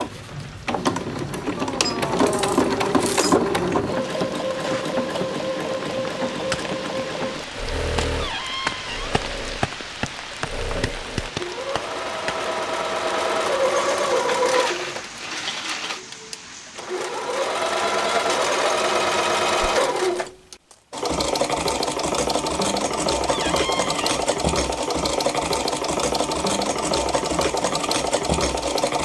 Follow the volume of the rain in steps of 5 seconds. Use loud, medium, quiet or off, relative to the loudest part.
medium, loud, loud, medium, off, off.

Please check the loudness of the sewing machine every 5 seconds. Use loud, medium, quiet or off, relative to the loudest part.
loud, medium, loud, loud, loud, loud.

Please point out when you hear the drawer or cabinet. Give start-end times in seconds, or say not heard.
8.1-9.2, 23.2-24.2.